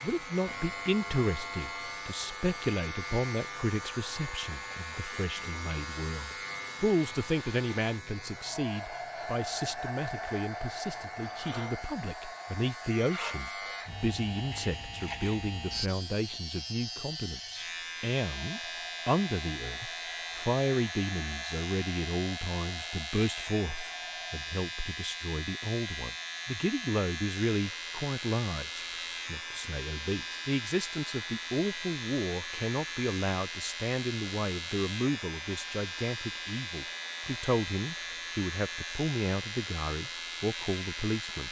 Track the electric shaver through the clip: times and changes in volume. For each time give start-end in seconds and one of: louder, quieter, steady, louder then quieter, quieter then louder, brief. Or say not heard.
0.0-41.4 steady.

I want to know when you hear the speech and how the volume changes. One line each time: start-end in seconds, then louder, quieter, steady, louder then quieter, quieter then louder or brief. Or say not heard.
0.0-41.4 steady.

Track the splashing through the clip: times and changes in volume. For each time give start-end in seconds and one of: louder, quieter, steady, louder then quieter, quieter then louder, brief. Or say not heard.
not heard.